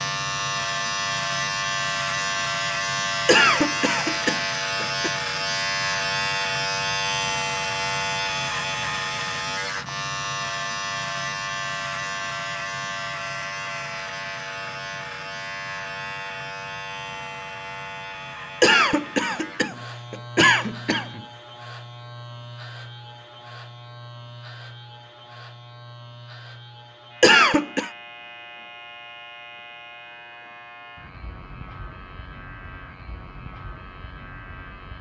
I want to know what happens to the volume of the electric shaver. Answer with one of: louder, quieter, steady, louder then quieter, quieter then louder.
quieter.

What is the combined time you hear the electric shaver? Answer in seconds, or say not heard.
35 s.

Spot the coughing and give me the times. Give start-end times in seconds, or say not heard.
3.2-5.1, 18.6-21.2, 27.2-27.9.